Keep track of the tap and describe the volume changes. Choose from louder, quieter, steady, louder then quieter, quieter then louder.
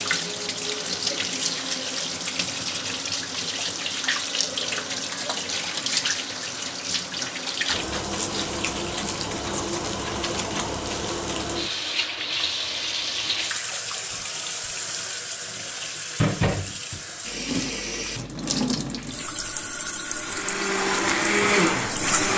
steady.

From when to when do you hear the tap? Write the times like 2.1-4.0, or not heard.
0.0-22.3.